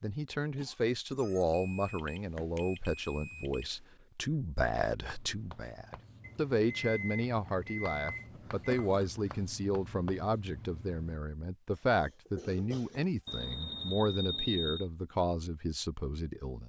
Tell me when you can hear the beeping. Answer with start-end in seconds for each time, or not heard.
1.5-3.6, 6.2-8.8, 13.2-14.8.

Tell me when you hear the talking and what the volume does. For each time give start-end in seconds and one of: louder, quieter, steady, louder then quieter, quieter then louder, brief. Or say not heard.
0.0-16.6 steady.